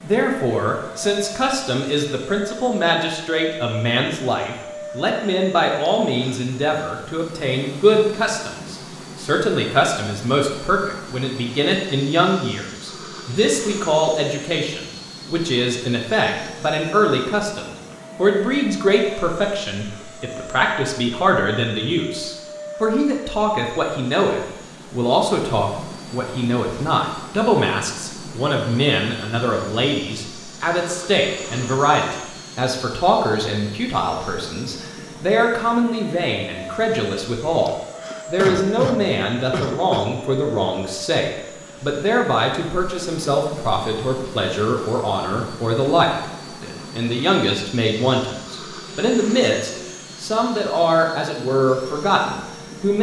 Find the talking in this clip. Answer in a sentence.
The talking can be heard from 0.0 to 52.9 s.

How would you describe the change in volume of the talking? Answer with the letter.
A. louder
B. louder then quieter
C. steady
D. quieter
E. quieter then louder
C.